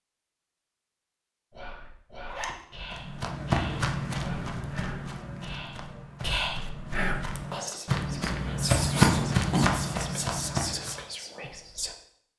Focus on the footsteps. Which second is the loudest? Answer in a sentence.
The volume of the footsteps peaks at 9 seconds.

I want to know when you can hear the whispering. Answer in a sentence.
The whispering can be heard from 1.5 to 11.9 s.